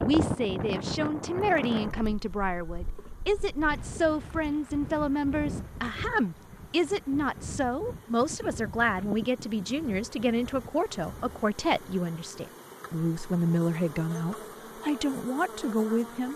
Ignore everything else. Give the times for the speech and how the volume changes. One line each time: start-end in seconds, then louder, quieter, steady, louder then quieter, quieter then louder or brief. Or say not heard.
0.0-16.3 steady.